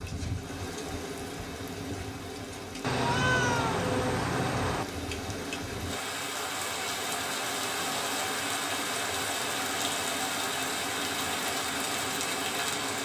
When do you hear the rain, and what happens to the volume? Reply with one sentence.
The rain can be heard from 0.0 to 13.0 s, getting louder.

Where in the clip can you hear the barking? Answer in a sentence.
You can't hear the barking here.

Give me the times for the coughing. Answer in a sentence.
The coughing can't be heard in this clip.